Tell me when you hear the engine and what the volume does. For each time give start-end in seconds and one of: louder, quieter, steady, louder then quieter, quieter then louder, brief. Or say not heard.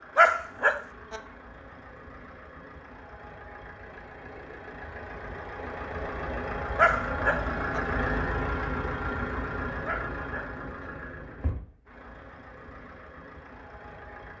0.0-14.3 louder then quieter.